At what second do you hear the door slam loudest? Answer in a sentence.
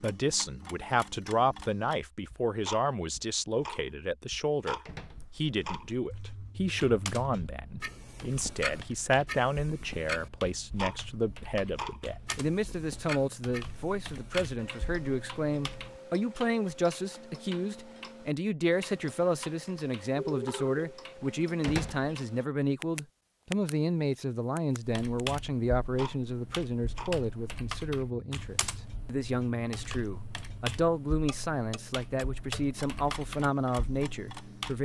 The volume of the door slam peaks at 22 seconds.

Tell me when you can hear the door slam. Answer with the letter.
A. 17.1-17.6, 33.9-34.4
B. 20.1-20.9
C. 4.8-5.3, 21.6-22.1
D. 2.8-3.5
C.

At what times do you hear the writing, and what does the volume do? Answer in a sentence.
The writing can't be heard in this clip.